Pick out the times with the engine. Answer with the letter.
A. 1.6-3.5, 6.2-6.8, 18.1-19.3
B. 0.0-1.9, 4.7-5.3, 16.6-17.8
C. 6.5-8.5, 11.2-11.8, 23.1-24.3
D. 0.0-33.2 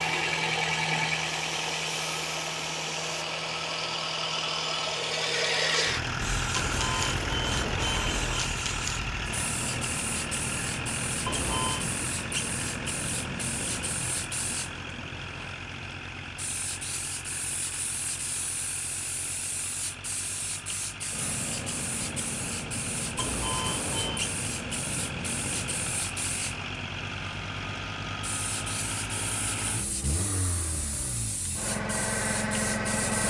D.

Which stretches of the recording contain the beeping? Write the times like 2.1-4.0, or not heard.
6.5-8.5, 11.2-11.8, 23.1-24.3.